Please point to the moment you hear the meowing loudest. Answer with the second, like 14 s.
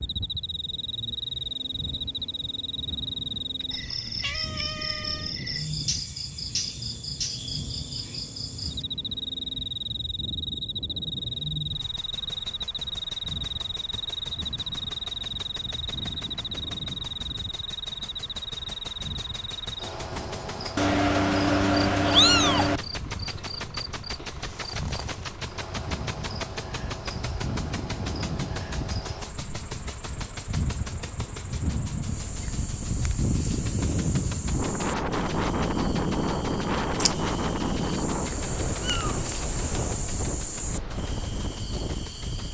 22 s.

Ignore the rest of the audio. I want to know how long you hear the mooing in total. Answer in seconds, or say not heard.
not heard.